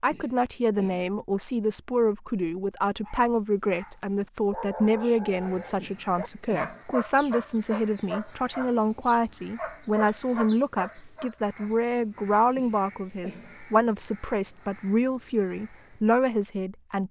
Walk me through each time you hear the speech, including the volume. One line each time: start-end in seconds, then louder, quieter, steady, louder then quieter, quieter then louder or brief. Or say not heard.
0.0-17.0 steady.